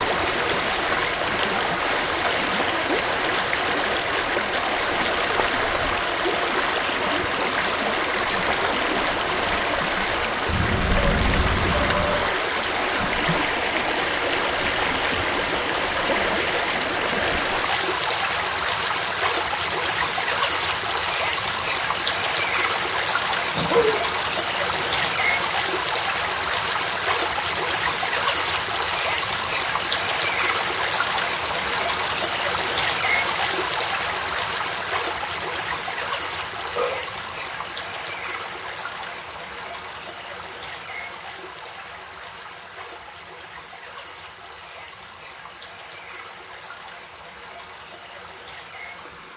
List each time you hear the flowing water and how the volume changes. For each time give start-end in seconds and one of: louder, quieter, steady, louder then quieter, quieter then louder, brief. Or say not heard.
0.0-49.3 quieter.